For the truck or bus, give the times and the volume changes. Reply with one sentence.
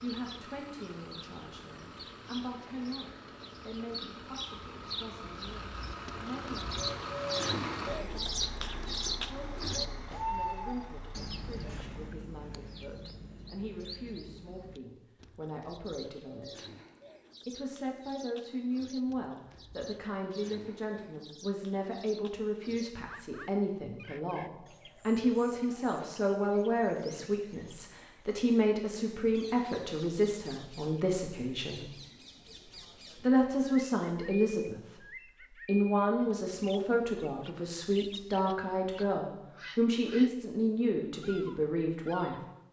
The truck or bus can be heard from 0.0 to 12.1 s, getting louder then quieter.